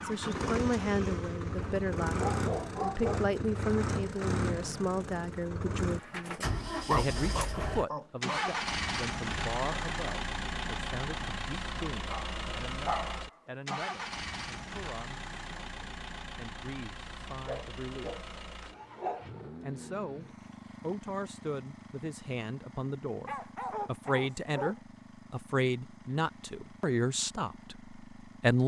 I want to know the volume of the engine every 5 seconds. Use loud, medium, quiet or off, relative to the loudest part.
loud, loud, loud, medium, quiet, quiet.